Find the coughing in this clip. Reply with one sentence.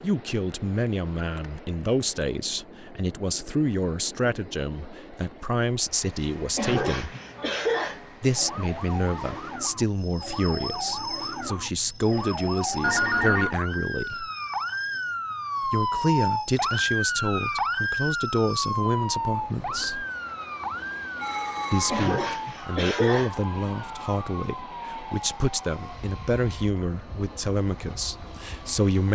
The coughing can be heard from 6.5 to 8.0 s and from 21.9 to 23.3 s.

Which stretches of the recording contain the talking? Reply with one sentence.
The talking can be heard from 0.0 to 7.2 s, from 8.2 to 14.3 s, from 15.7 to 20.1 s and from 21.7 to 29.1 s.